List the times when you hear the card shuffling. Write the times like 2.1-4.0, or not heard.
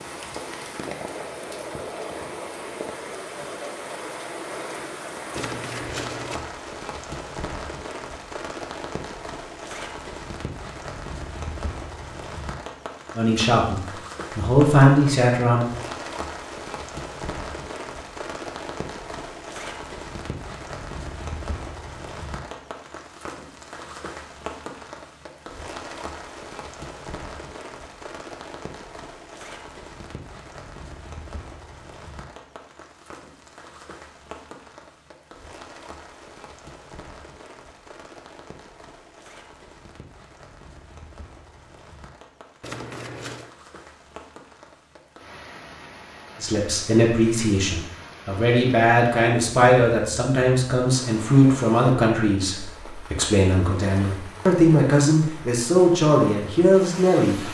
5.3-6.5, 42.6-43.5.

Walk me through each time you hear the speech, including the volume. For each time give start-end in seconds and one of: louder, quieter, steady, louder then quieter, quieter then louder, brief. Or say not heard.
13.2-15.7 brief
46.4-57.5 steady.